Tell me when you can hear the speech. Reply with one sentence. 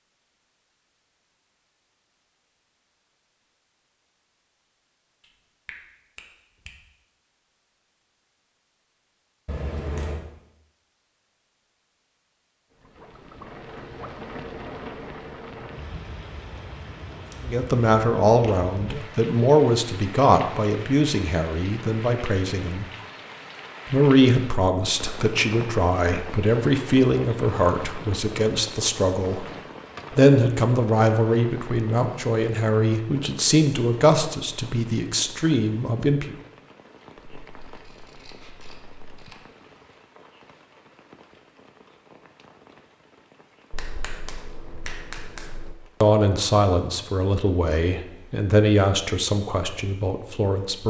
You can hear the speech from 17.4 to 22.9 s, from 23.9 to 29.5 s, from 30.1 to 36.4 s and from 46.0 to 50.8 s.